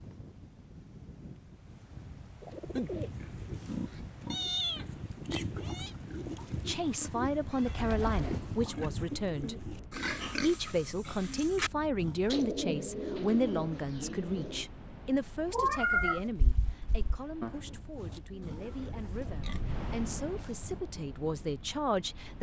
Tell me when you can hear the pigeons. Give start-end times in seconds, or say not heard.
2.4-3.1, 7.6-9.6, 12.2-14.7, 17.4-19.4.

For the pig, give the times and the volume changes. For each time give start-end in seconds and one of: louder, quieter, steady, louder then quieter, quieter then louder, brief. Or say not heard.
2.6-12.4 steady
17.9-20.8 brief.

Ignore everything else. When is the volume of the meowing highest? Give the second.
16 s.